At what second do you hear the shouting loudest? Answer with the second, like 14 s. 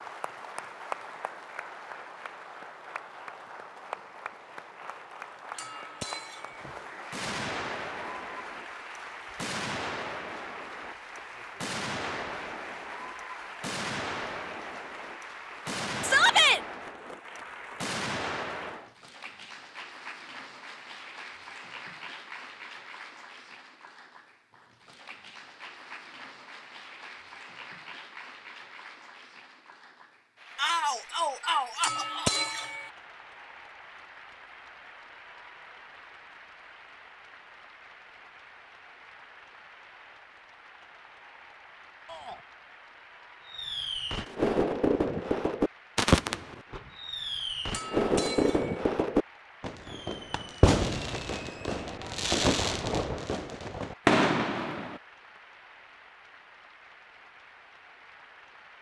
16 s.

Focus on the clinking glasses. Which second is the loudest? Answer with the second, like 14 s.
32 s.